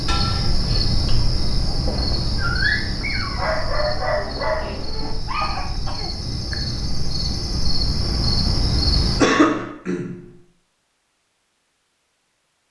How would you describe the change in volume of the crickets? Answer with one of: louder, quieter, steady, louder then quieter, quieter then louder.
quieter then louder.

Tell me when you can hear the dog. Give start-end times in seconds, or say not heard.
1.9-5.7.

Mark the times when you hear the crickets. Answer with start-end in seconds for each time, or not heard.
0.0-9.2.